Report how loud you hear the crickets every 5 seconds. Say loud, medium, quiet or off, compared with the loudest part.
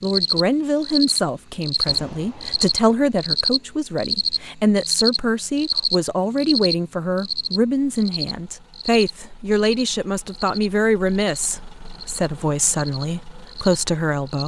loud, loud, quiet.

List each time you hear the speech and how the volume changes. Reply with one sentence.
You can hear the speech from 0.0 to 14.4 s, at a steady volume.